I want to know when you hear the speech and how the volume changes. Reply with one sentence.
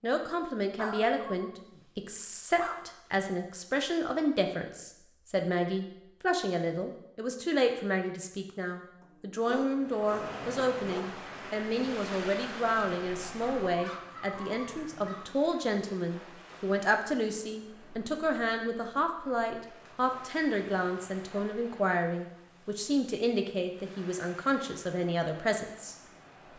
The speech can be heard from 0.0 to 25.9 s, at a steady volume.